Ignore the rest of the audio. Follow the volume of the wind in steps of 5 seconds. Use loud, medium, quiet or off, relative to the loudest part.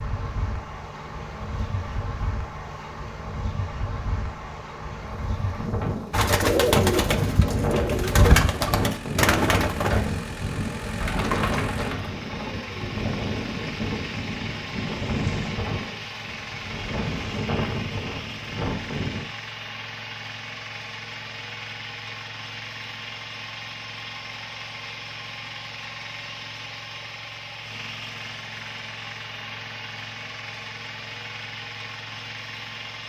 medium, loud, loud, loud, off, off, off.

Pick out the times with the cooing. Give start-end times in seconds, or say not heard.
6.1-12.9.